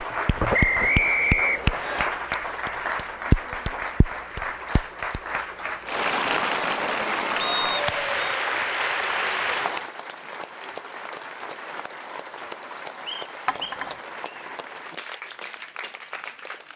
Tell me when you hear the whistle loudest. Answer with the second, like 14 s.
1 s.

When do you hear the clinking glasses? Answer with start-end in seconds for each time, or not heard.
13.4-13.9.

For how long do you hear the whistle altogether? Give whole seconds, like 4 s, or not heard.
4 s.